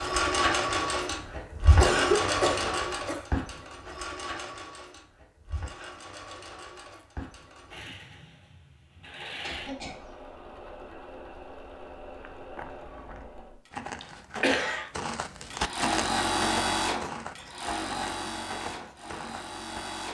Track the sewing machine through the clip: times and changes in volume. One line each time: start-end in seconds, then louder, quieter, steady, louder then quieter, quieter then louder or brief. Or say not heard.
0.0-13.7 quieter
15.5-20.0 quieter.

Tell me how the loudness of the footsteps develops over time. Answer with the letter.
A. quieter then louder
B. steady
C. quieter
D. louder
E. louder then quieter
E.